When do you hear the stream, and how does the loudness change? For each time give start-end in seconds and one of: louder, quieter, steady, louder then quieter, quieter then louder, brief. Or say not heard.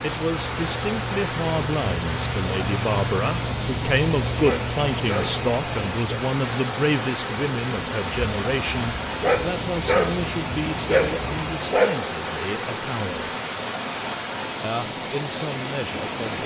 0.0-16.4 steady.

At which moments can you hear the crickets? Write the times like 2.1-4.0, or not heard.
0.0-11.7.